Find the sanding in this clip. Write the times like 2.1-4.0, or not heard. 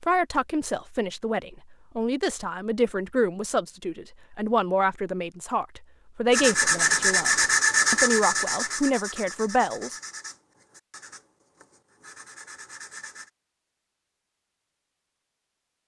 6.3-13.3.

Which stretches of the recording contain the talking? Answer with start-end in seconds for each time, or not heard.
0.0-9.9.